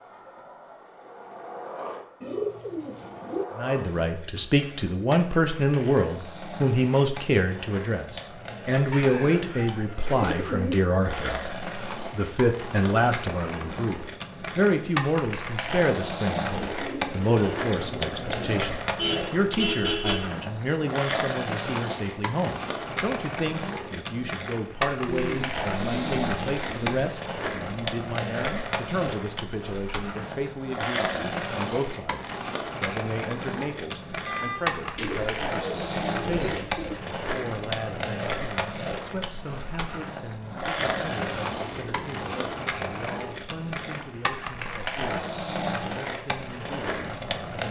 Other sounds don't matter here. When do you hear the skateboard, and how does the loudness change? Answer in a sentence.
You can hear the skateboard from 0.0 to 47.6 s, getting louder.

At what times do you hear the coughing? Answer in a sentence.
You can't hear the coughing here.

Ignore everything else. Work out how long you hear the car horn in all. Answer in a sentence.
The car horn can be heard for 2 seconds in total.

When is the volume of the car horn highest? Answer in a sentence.
The loudest moment of the car horn is at 20 seconds.